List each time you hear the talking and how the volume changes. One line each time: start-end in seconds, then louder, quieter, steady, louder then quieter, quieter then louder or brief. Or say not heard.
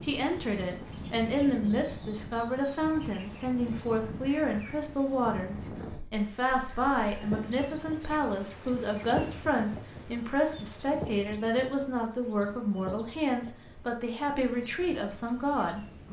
0.0-16.0 steady.